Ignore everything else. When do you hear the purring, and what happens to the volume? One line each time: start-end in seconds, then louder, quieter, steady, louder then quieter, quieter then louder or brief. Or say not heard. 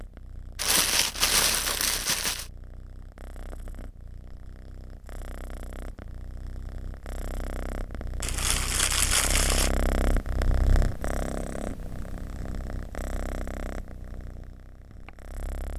0.0-15.7 louder then quieter.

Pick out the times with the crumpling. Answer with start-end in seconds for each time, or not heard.
0.6-2.5, 8.2-9.7.